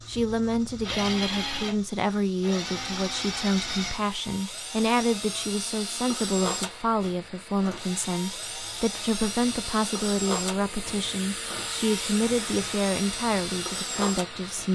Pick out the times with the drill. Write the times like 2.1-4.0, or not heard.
0.0-14.7.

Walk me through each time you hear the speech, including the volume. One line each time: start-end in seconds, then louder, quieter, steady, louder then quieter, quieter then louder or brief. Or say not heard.
0.1-14.7 steady.